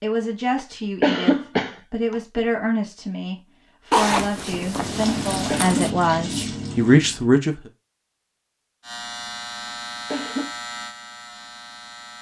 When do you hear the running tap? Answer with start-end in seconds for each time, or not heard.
4.7-7.2.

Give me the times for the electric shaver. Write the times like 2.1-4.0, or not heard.
8.8-12.1.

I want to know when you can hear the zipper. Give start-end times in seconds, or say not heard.
3.9-5.9.